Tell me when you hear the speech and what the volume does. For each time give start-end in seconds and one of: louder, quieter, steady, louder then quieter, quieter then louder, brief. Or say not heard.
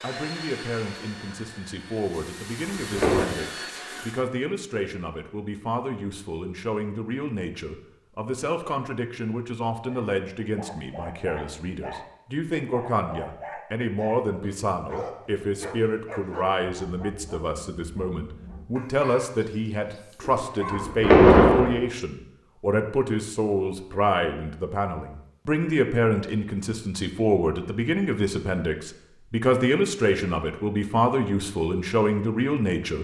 0.0-32.9 louder.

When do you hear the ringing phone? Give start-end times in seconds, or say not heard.
not heard.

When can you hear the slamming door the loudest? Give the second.
21 s.